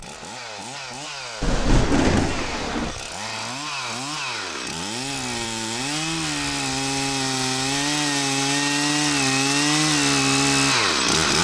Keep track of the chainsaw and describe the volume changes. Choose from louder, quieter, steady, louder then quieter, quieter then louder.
louder.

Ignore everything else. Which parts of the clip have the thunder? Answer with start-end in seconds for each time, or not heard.
1.4-3.0.